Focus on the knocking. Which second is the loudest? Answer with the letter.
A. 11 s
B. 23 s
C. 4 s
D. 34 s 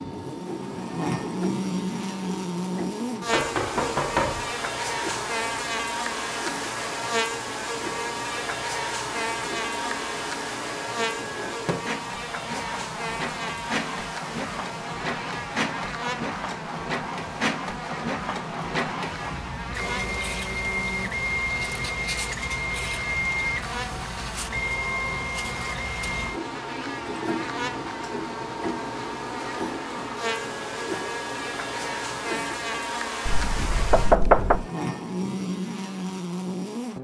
D.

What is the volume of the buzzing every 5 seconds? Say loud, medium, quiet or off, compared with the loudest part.
loud, loud, loud, medium, medium, medium, loud, loud.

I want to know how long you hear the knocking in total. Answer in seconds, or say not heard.
3 s.